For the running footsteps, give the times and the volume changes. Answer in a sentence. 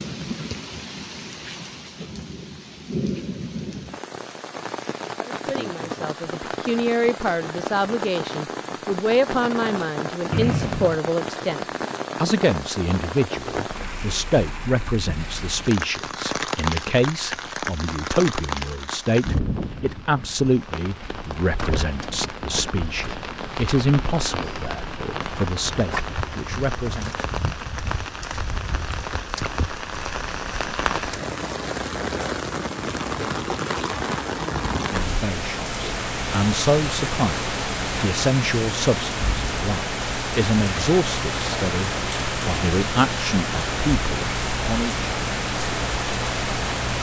You can't hear the running footsteps here.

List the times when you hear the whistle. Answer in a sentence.
The whistle can be heard from 10.3 to 11.0 s.